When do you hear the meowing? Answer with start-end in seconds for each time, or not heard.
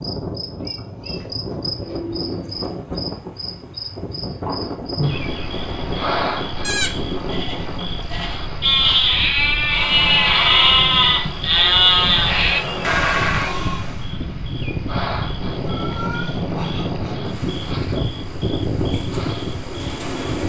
0.6-1.2, 15.7-16.3.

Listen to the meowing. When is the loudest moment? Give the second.
16 s.